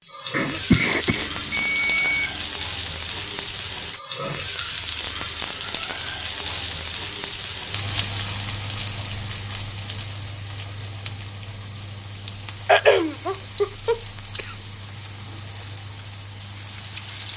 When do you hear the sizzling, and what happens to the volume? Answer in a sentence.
The sizzling can be heard from 0.0 to 17.3 s, getting quieter.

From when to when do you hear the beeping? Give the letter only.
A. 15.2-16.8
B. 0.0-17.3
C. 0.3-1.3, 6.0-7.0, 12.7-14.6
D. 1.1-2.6
D.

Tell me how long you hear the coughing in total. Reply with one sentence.
You can hear the coughing for 4 seconds altogether.